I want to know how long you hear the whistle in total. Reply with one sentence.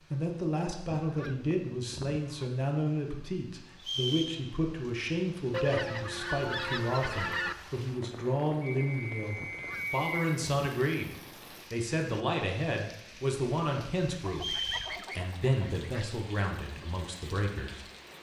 You can hear the whistle for 3 seconds altogether.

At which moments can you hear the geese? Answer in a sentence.
You can hear the geese from 0.9 to 2.5 s, from 5.5 to 7.5 s, from 9.4 to 10.7 s and from 14.1 to 16.1 s.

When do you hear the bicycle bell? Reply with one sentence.
The bicycle bell can't be heard in this clip.